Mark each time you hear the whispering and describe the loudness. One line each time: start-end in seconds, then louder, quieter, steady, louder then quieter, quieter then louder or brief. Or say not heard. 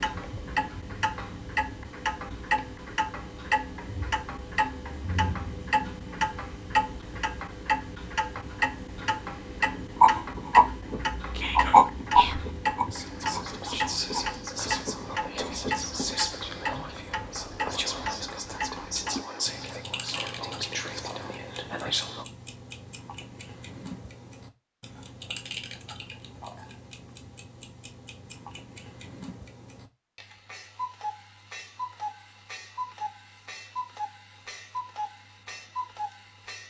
11.3-22.2 steady.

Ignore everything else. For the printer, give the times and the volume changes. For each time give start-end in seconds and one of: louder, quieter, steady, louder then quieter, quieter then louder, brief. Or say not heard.
not heard.